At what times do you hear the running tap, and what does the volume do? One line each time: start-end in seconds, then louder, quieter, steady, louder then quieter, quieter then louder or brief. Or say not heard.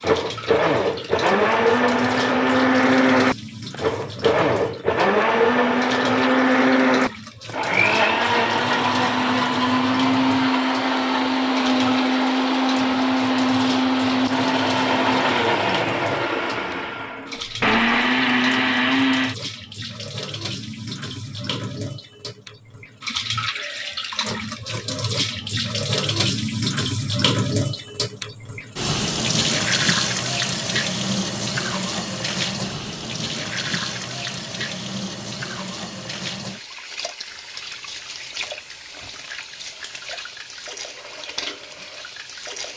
0.0-42.7 louder then quieter.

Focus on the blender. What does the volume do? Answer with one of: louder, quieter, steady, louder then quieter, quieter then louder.
steady.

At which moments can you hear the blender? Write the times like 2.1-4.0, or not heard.
0.0-19.4.